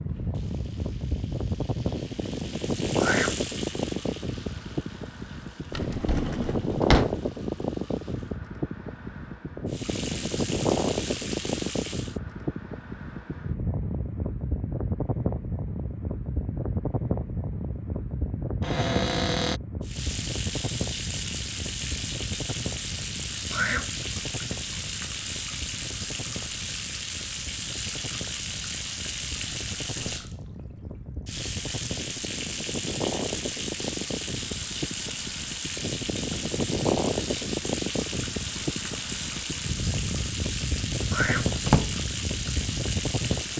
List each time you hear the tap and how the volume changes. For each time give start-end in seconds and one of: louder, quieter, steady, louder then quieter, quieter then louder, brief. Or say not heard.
0.0-8.4 louder then quieter
9.7-12.2 brief
19.8-43.5 steady.